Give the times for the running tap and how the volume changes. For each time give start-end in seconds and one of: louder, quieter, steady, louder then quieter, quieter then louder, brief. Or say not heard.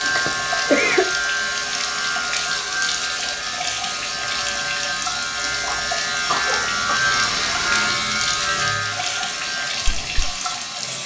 0.0-11.0 steady.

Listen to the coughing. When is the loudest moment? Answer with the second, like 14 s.
1 s.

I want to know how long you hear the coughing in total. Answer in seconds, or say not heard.
2 s.